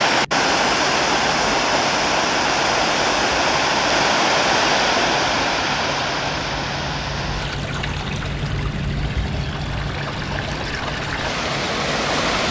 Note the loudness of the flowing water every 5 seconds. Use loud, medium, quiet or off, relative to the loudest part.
loud, medium, medium.